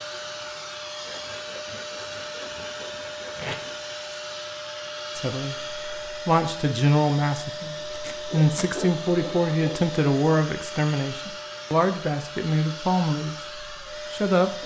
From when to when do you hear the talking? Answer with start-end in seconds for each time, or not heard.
5.2-14.6.